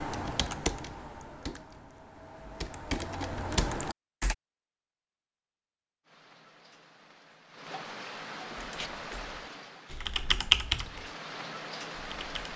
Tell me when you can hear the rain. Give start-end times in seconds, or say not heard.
6.0-12.5.